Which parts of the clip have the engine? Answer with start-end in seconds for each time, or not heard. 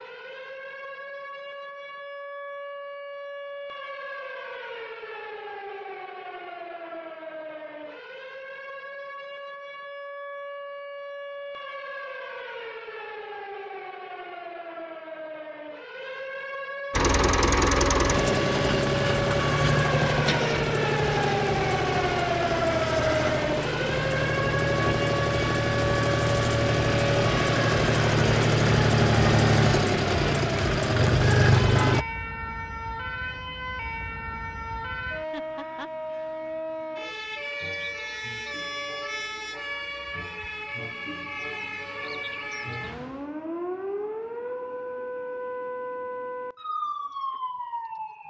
16.9-32.0.